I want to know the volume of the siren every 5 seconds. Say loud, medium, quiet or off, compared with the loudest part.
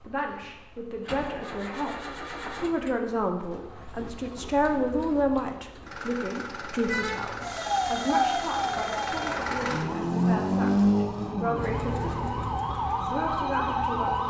off, loud, loud.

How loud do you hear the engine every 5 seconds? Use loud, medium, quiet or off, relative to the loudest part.
quiet, medium, loud.